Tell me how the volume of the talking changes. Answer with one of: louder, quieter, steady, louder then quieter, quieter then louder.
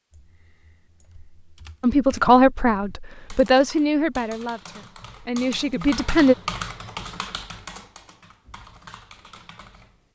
quieter then louder.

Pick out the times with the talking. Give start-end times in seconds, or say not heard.
1.8-6.3.